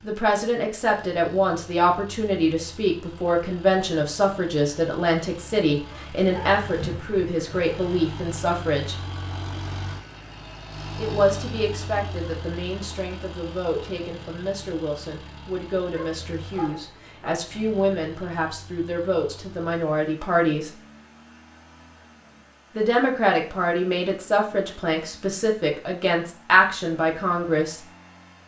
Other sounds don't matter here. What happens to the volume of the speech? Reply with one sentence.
The loudness of the speech goes down, then up.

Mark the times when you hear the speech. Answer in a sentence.
The speech can be heard from 0.0 to 9.0 s, from 10.9 to 20.8 s and from 22.8 to 27.9 s.